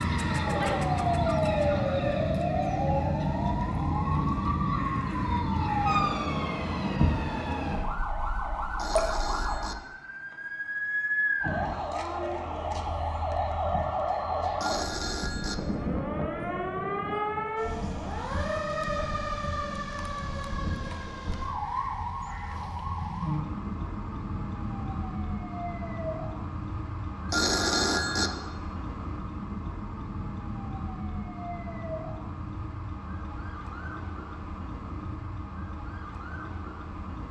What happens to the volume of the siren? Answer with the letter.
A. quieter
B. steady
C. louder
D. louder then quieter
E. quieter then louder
A.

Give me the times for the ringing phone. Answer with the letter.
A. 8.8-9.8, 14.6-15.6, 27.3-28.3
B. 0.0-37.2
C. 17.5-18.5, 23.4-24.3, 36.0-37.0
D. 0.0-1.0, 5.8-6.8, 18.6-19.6
A.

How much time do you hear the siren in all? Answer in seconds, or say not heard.
37 s.